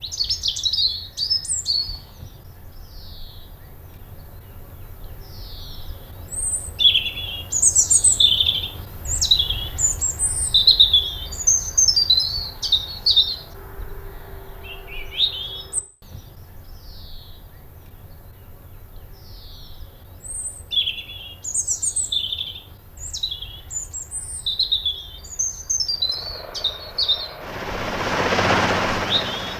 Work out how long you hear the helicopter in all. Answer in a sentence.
You can hear the helicopter for 4 seconds altogether.